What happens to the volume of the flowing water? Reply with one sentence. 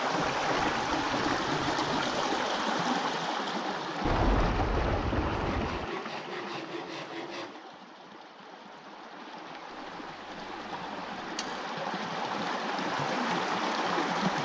The loudness of the flowing water goes down, then up.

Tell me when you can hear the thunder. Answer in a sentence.
The thunder can be heard from 4.0 to 5.8 s.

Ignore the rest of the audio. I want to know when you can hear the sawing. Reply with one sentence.
You can hear the sawing from 0.2 to 2.5 s, from 5.3 to 7.7 s and from 10.3 to 11.6 s.